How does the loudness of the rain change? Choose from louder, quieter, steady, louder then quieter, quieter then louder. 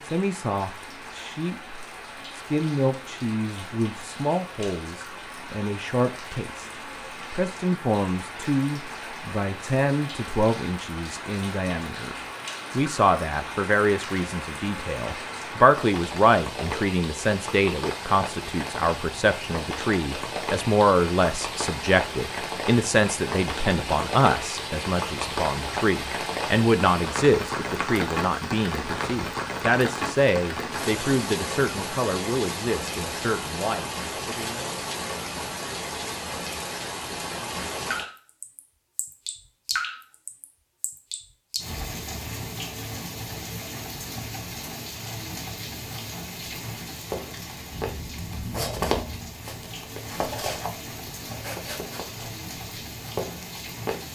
louder then quieter.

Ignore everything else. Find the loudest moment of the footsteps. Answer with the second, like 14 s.
49 s.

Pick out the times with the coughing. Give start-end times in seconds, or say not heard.
not heard.